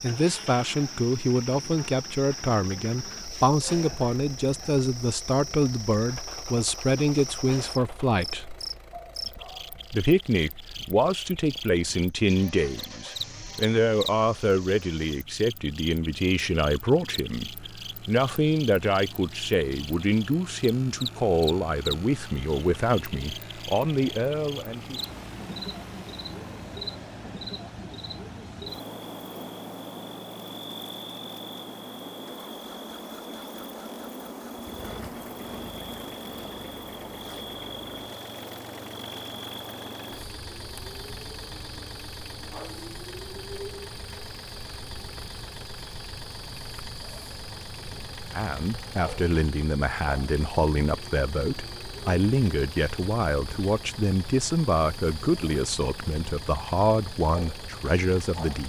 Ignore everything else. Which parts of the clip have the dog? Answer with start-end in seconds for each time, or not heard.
8.9-9.9.